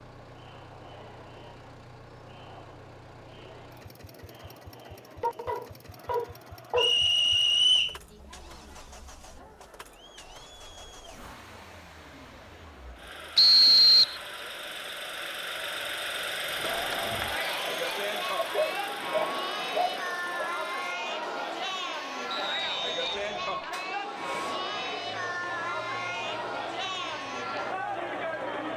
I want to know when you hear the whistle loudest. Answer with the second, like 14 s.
14 s.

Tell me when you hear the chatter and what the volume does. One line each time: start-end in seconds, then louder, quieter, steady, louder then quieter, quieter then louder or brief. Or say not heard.
0.0-28.7 louder.